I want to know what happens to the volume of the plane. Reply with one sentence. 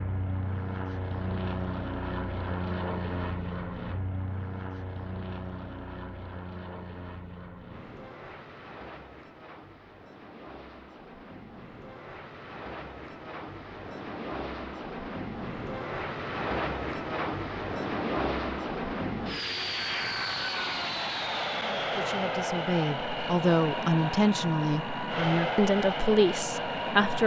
The loudness of the plane goes down, then up.